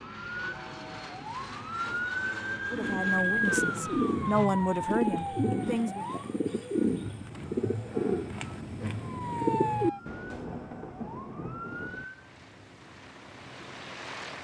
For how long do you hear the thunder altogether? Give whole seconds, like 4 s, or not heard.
2 s.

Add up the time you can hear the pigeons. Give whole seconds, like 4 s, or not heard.
8 s.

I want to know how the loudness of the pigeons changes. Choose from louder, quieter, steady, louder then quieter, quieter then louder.
steady.